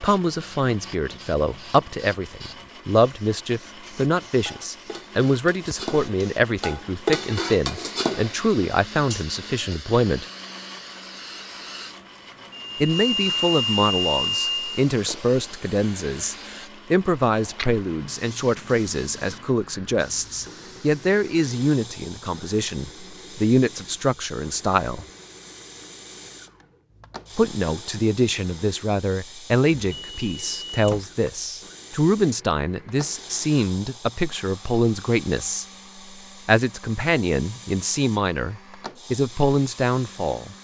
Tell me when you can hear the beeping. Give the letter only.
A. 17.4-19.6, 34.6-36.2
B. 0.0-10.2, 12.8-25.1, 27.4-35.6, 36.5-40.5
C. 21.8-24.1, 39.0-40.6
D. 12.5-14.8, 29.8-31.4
D.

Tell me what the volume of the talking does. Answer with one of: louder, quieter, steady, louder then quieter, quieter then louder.
steady.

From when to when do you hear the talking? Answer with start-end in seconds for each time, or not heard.
0.0-10.2, 12.8-25.1, 27.4-35.6, 36.5-40.5.